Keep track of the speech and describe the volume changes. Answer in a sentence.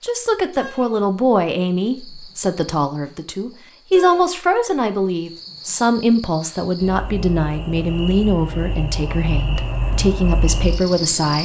The volume of the speech stays about the same.